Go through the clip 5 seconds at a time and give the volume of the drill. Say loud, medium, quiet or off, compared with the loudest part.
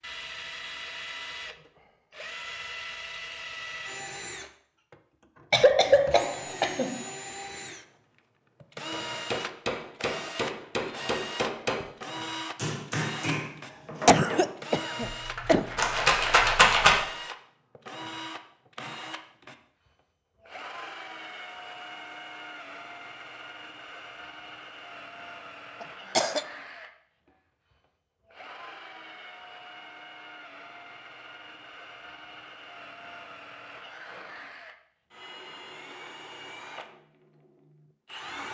loud, loud, loud, loud, medium, medium, medium, medium.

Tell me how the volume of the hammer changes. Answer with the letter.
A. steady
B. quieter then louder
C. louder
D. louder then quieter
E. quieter
A.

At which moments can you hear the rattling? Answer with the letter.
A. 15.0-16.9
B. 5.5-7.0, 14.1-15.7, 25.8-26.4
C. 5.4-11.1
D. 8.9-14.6
A.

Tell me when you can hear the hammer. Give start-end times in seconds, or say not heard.
8.9-14.6.